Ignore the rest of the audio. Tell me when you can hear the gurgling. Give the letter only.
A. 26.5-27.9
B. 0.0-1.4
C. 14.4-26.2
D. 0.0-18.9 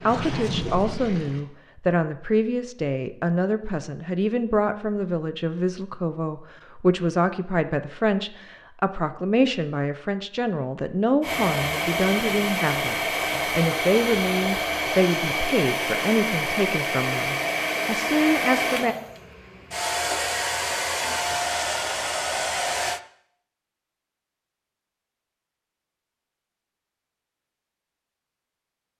B.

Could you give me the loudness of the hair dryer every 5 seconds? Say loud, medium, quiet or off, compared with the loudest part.
off, off, loud, loud, loud, off.